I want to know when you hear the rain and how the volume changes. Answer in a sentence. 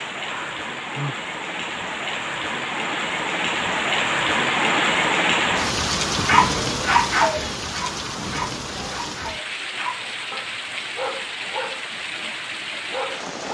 The rain can be heard from 0.0 to 13.4 s, getting louder then quieter.